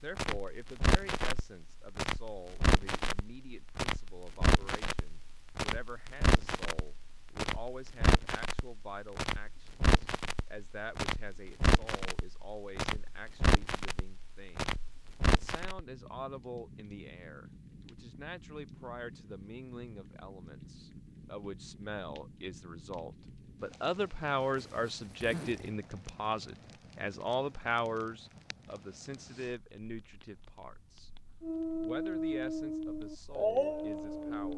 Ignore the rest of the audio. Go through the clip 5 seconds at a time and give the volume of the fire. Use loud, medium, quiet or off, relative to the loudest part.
loud, loud, loud, medium, quiet, quiet, quiet.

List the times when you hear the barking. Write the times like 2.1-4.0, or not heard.
31.4-34.5.